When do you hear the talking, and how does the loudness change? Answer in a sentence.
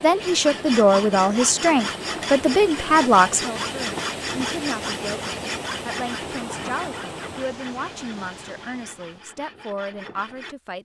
You can hear the talking from 0.0 to 10.8 s, getting quieter.